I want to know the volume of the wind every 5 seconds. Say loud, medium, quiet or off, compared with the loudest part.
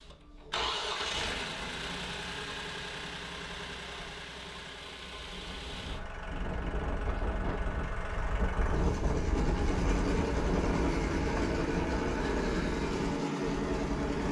off, loud, loud.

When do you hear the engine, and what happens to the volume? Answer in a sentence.
The engine can be heard from 0.0 to 14.2 s, getting quieter then louder.